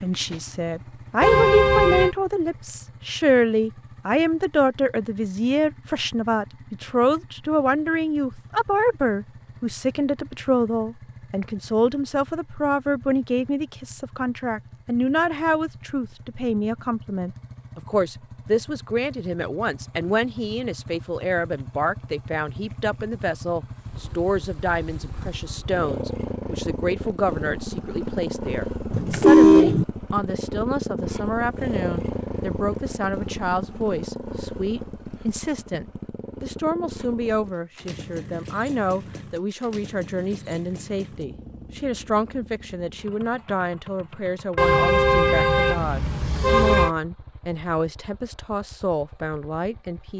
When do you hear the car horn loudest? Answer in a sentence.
The volume of the car horn peaks at 29 seconds.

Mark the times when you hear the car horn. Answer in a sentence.
The car horn can be heard from 1.2 to 2.1 s, from 28.9 to 29.9 s and from 44.5 to 46.9 s.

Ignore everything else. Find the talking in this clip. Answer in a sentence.
You can hear the talking from 0.0 to 50.1 s.